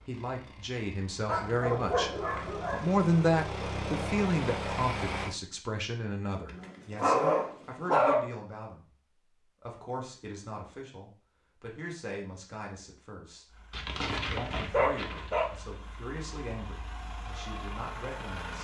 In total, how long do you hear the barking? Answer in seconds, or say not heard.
5 s.